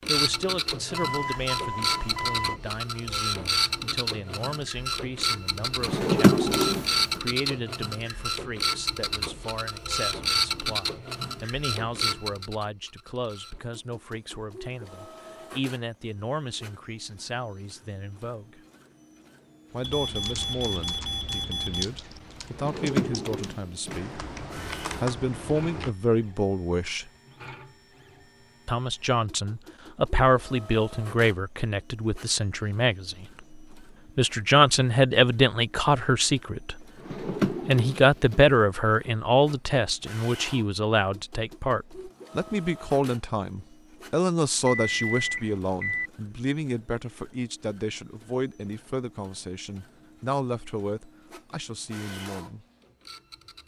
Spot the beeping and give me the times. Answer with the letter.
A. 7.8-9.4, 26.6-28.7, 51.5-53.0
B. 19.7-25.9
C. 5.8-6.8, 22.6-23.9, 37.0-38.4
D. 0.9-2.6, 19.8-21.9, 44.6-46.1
D.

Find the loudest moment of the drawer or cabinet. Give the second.
6 s.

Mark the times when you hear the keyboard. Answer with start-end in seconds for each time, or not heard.
19.7-25.9.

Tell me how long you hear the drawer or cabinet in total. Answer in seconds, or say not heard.
4 s.